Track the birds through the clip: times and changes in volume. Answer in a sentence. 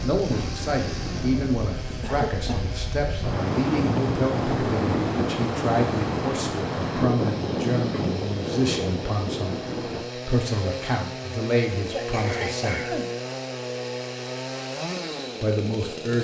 The birds can't be heard in this clip.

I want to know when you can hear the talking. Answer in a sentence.
The talking can be heard from 0.0 to 13.0 s and from 15.4 to 16.1 s.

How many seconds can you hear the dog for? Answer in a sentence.
The dog can't be heard in this clip.